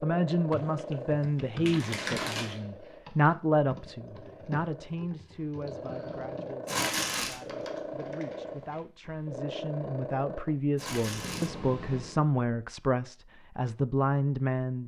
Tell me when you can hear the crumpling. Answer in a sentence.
You can hear the crumpling from 1.6 to 2.6 s, from 6.7 to 7.4 s and from 10.8 to 11.5 s.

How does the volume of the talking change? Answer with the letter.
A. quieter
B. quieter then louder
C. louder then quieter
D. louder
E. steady
B.